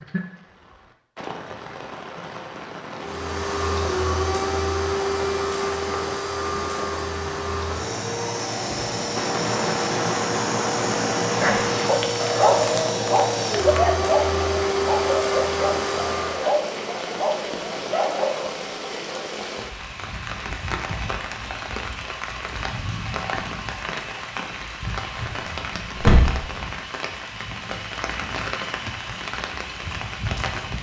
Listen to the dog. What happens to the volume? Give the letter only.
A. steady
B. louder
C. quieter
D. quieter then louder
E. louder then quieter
C.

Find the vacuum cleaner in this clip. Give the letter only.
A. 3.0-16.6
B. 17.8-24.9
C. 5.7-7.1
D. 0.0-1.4
A.